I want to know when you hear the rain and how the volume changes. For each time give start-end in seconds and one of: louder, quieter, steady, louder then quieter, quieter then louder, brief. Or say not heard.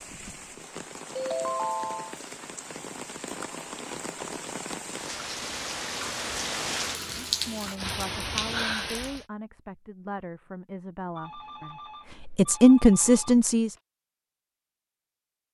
0.0-9.2 louder.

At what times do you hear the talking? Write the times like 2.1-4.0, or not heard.
7.3-13.8.